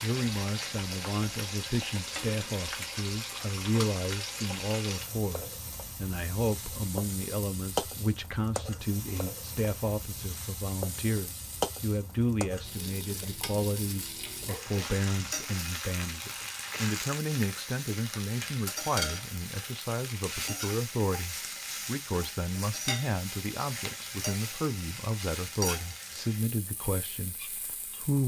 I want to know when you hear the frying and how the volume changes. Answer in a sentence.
You can hear the frying from 0.0 to 28.2 s, at a steady volume.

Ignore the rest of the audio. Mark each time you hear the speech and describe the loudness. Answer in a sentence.
The speech can be heard from 0.0 to 28.2 s, at a steady volume.